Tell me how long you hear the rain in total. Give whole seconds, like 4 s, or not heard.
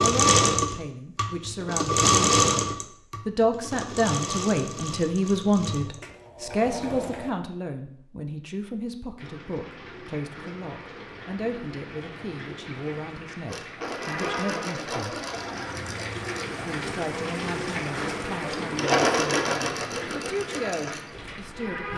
13 s.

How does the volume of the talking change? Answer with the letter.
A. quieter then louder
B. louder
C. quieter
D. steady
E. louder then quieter
C.